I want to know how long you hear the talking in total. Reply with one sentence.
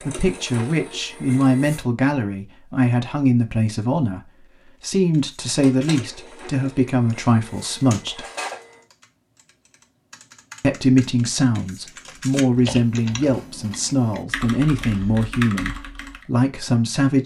You can hear the talking for 15 seconds altogether.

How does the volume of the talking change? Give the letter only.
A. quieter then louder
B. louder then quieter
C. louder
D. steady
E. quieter
D.